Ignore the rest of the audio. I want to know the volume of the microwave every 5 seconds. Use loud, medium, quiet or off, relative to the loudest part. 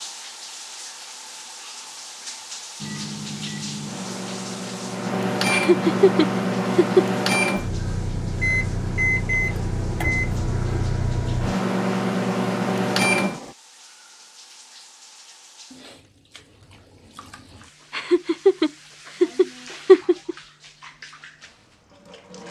medium, loud, loud, off, off.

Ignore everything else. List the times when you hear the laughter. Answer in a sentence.
The laughter can be heard from 5.5 to 7.0 s and from 17.9 to 20.4 s.